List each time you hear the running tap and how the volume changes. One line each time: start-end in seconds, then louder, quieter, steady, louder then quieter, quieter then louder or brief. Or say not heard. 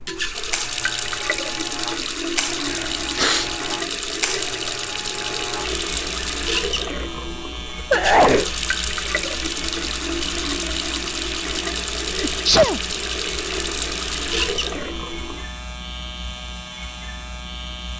0.0-15.5 steady.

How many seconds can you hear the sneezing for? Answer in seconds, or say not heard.
2 s.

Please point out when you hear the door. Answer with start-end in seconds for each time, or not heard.
not heard.